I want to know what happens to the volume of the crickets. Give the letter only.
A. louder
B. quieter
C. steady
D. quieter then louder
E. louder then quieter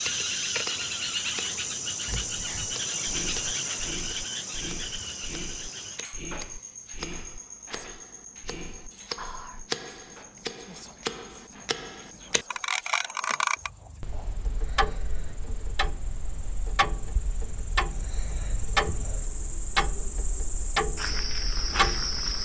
D.